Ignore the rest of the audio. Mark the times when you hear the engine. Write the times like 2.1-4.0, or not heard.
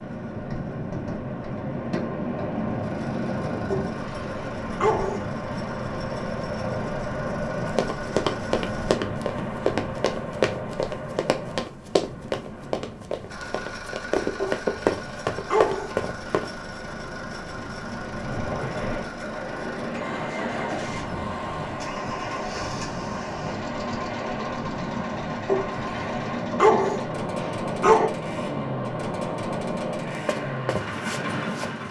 0.0-8.9, 13.3-31.8.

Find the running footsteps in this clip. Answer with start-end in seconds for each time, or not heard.
7.7-16.5, 30.2-31.7.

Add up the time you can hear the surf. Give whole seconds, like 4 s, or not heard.
32 s.